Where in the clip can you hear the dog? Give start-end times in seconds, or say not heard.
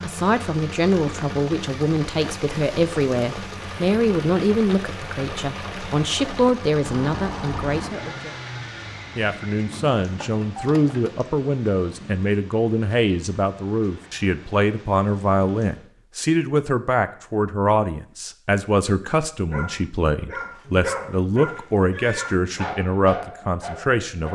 19.4-24.3.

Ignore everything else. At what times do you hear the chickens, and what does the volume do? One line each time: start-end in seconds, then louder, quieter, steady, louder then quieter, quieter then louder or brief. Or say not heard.
not heard.